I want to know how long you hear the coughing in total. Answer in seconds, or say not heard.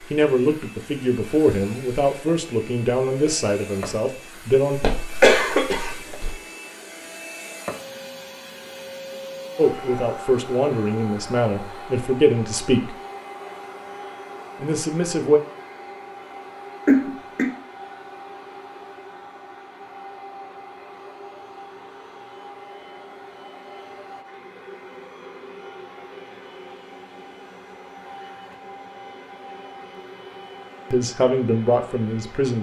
2 s.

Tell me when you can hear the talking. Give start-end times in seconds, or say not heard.
0.0-4.8, 9.6-12.9, 14.6-15.4, 30.9-32.5.